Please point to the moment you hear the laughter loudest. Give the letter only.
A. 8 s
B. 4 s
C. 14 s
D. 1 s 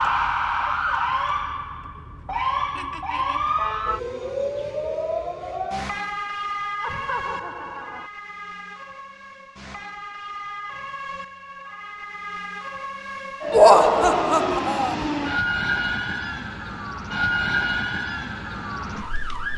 C.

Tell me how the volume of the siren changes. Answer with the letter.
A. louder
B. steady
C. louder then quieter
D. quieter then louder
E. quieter
D.